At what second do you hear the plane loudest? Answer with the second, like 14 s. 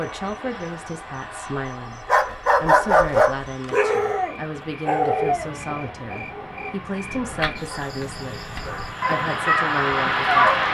10 s.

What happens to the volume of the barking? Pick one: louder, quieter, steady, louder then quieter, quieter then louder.
quieter then louder.